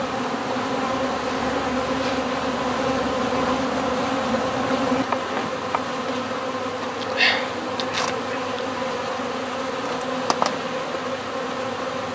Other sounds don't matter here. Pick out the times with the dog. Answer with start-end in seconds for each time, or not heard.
7.0-8.6.